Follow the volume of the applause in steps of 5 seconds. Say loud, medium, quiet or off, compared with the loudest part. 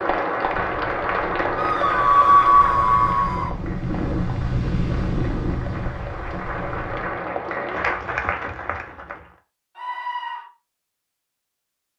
loud, loud, off.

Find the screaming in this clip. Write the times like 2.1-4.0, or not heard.
1.6-3.5, 9.8-10.4.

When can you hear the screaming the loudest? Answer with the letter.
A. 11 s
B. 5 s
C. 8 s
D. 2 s
D.